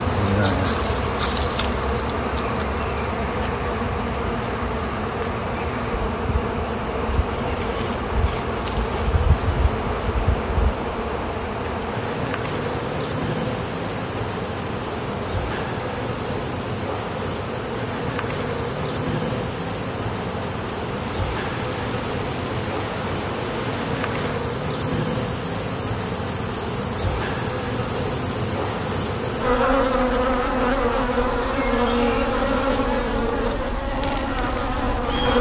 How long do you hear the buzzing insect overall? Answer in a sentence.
You can hear the buzzing insect for 35 seconds altogether.